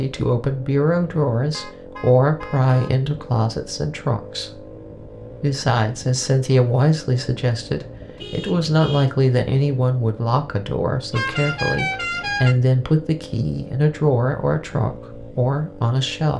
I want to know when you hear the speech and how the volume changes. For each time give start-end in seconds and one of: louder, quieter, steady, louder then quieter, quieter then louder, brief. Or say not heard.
0.0-16.3 steady.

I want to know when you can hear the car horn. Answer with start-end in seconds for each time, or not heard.
1.5-2.9, 8.2-9.1, 11.1-12.6.